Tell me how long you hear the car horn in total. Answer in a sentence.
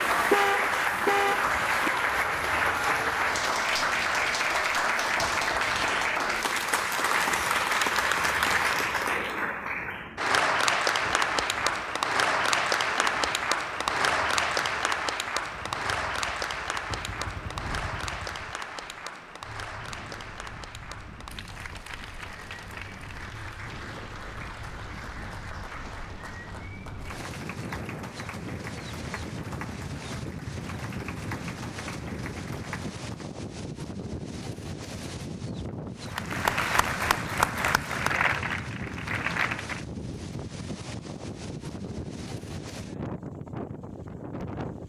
You can hear the car horn for 2 seconds altogether.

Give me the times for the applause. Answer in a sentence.
The applause can be heard from 0.0 to 33.3 s and from 36.0 to 39.9 s.